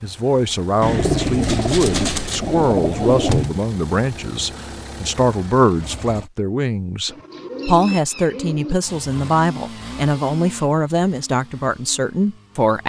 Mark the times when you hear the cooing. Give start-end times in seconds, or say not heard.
0.8-3.5, 7.0-8.8.